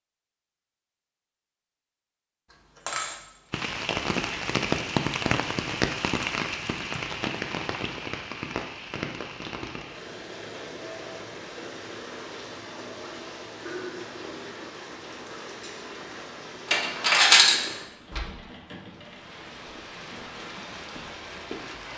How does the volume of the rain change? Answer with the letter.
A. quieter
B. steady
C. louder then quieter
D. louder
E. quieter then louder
A.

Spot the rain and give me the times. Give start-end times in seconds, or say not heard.
3.5-21.9.